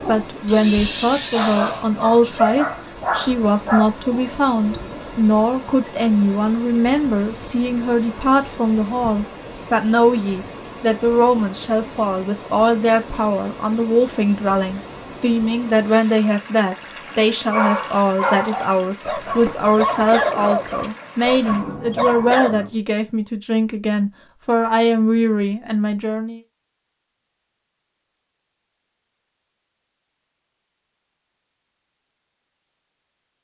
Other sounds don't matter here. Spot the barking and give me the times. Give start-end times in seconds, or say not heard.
0.0-5.0, 17.2-22.7.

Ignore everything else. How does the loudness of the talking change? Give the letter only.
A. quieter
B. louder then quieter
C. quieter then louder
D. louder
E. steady
E.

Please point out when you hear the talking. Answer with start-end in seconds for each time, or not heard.
0.1-26.4.